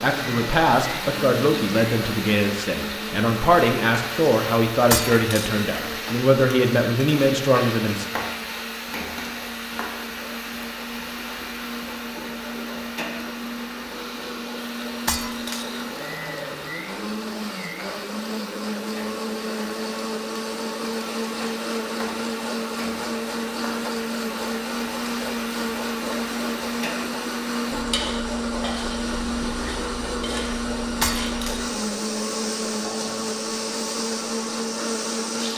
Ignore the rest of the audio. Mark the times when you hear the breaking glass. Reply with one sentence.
You can hear the breaking glass from 4.9 to 5.6 s, from 15.1 to 15.8 s and from 31.0 to 31.6 s.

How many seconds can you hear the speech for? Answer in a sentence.
You can hear the speech for 8 seconds altogether.